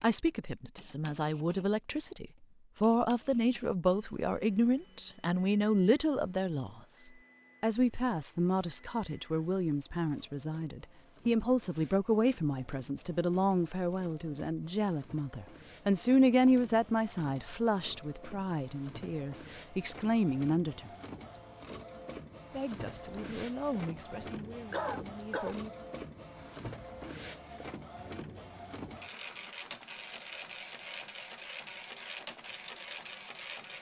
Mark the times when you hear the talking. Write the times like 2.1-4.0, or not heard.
0.0-20.9, 22.5-25.7.